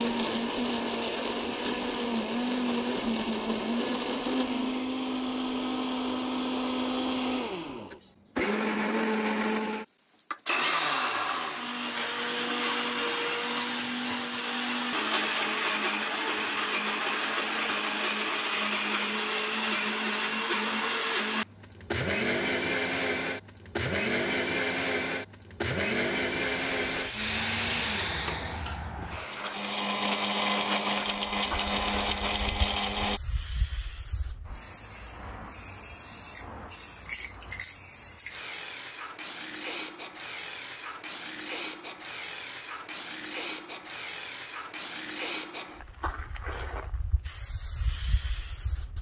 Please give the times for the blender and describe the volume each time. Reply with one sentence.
The blender can be heard from 0.0 to 33.2 s, at a steady volume.